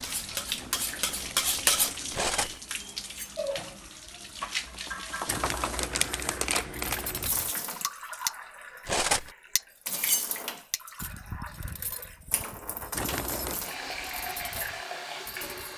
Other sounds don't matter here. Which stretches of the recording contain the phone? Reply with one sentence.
You can't hear the phone here.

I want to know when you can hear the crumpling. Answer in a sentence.
You can hear the crumpling from 0.6 to 2.6 s, from 5.2 to 7.3 s and from 12.9 to 13.7 s.